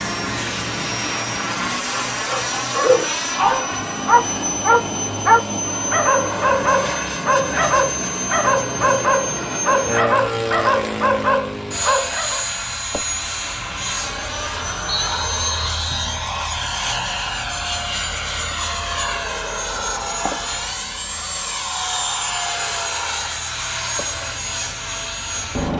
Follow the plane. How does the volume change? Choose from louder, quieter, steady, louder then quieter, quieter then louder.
steady.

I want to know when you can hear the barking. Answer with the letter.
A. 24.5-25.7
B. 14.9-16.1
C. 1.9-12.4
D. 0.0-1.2
C.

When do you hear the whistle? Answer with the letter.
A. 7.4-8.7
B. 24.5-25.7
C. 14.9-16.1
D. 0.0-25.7
C.